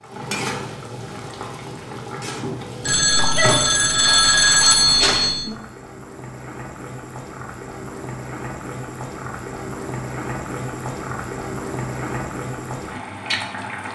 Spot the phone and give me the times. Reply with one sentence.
You can hear the phone from 2.8 to 5.5 s.